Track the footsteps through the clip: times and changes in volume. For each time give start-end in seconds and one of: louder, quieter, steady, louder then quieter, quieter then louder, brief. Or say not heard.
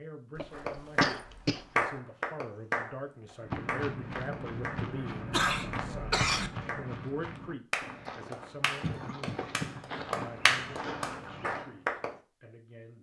3.4-11.7 quieter then louder.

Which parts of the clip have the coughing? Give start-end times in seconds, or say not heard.
0.3-1.6, 5.3-6.5, 8.8-10.3.